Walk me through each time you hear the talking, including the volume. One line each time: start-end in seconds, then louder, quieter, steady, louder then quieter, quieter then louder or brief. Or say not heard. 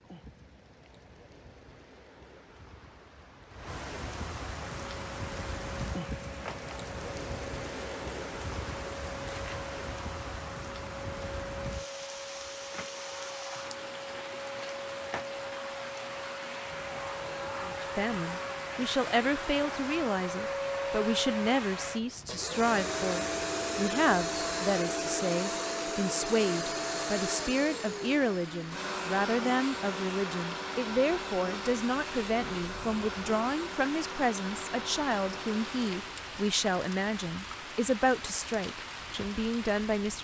17.6-40.1 steady.